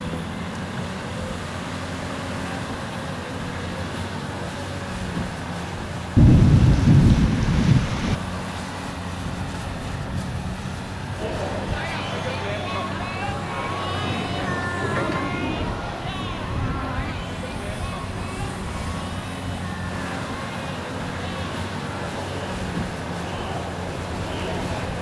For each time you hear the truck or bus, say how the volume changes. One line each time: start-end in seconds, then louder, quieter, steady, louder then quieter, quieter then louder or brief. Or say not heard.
0.0-24.9 steady.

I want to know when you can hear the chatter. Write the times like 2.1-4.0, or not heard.
11.2-24.9.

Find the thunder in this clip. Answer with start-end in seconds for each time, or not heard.
6.2-8.2, 13.8-17.1.